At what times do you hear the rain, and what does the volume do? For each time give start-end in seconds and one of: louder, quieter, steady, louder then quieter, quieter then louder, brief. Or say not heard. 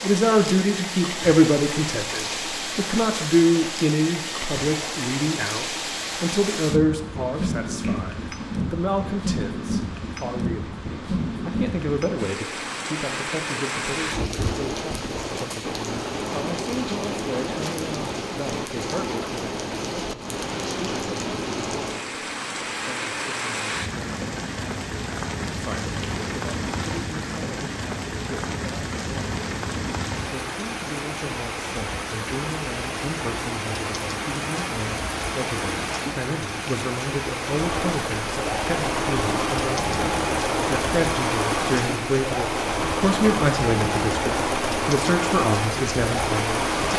0.0-46.9 steady.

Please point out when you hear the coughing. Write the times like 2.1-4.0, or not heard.
not heard.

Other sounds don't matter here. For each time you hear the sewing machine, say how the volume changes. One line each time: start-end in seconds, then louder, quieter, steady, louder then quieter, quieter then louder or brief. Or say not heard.
37.5-46.9 steady.